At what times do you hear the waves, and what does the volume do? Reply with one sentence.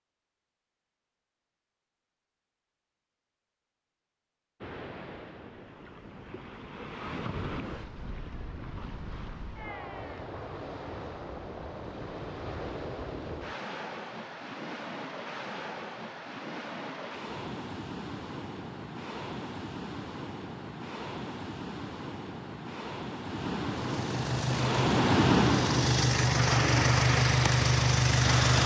You can hear the waves from 4.6 to 28.6 s, getting louder.